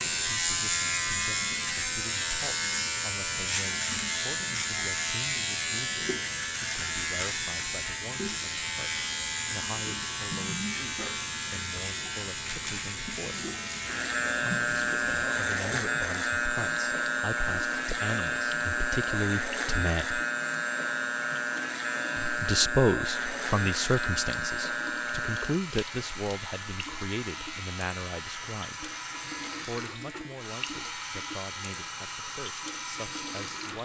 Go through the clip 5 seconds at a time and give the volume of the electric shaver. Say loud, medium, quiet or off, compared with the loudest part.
loud, loud, loud, loud, loud, medium, quiet.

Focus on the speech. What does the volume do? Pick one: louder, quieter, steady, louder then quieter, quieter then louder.
louder then quieter.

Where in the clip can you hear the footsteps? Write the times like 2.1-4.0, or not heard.
not heard.